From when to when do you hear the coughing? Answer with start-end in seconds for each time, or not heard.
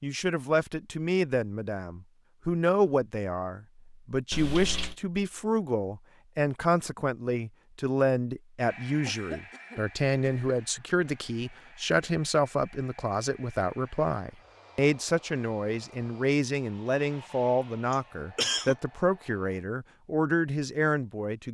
4.3-5.0, 9.0-10.6, 17.9-18.8.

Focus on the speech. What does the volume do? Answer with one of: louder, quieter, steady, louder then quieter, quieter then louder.
steady.